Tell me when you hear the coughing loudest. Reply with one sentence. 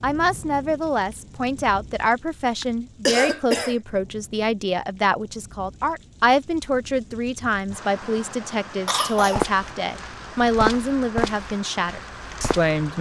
The volume of the coughing peaks at 3 seconds.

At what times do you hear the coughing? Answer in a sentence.
You can hear the coughing from 2.6 to 3.8 s and from 8.8 to 9.5 s.